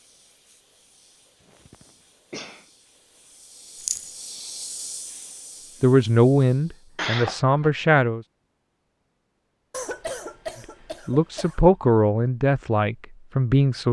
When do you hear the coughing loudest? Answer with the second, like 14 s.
7 s.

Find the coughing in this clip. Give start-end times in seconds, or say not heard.
1.5-2.6, 7.0-7.7, 9.7-11.6.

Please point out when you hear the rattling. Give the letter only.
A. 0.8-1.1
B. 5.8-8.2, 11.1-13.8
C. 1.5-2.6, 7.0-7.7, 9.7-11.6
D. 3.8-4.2
D.